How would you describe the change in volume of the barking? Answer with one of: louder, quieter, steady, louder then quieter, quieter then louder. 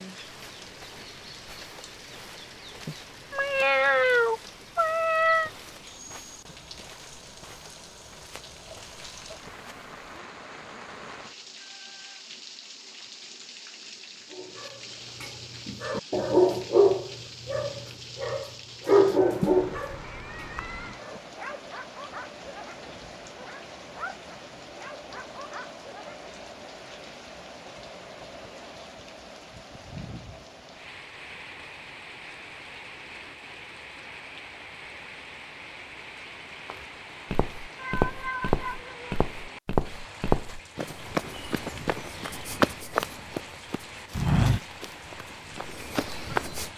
quieter.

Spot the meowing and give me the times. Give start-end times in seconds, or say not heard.
2.9-5.5, 19.4-20.9, 37.8-39.1.